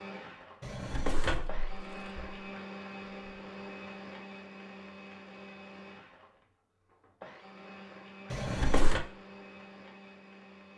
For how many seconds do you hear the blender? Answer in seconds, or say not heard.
11 s.